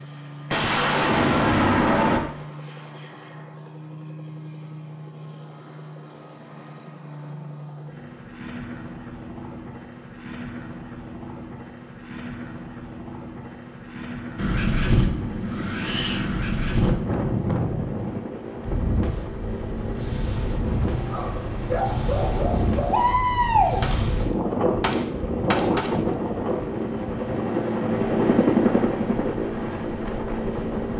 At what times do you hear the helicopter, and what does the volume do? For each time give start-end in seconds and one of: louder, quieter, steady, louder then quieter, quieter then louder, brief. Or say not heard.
0.0-30.9 louder.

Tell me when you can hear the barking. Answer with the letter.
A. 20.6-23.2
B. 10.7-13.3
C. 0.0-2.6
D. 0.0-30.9
A.